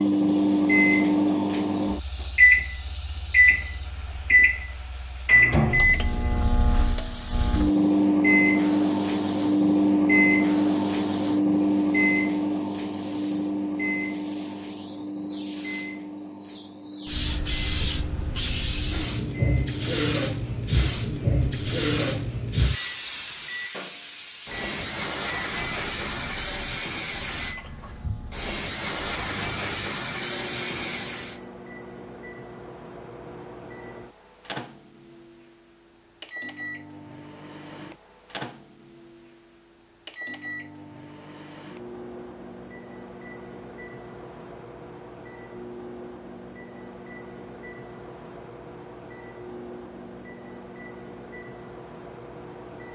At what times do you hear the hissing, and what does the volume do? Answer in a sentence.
The hissing can be heard from 0.0 to 31.4 s, getting louder.